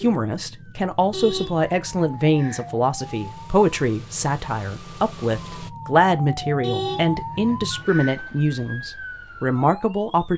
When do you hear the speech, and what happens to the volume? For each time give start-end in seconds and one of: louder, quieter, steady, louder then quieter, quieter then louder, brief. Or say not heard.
0.0-10.3 steady.